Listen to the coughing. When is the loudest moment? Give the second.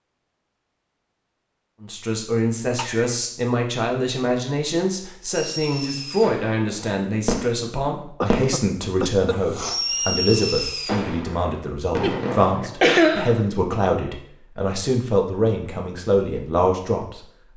13 s.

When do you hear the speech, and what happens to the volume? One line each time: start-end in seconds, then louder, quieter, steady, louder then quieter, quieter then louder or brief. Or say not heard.
1.8-17.2 steady.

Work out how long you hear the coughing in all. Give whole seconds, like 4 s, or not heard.
3 s.